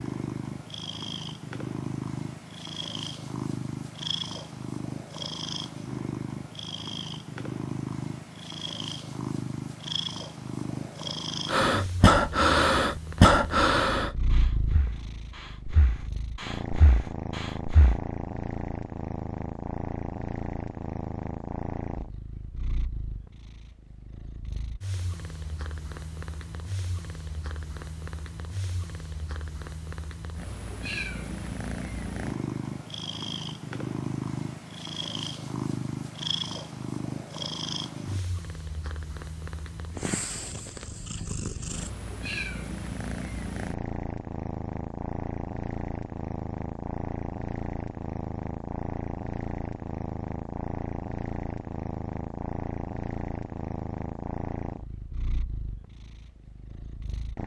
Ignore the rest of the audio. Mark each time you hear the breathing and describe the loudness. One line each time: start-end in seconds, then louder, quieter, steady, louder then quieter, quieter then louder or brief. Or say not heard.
11.4-18.0 quieter then louder.